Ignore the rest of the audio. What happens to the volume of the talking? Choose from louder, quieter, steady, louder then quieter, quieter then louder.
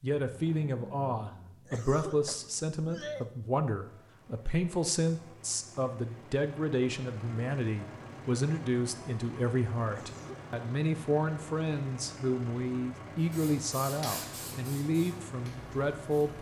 steady.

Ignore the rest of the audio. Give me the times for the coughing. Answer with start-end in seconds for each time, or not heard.
1.6-3.2, 9.9-10.6.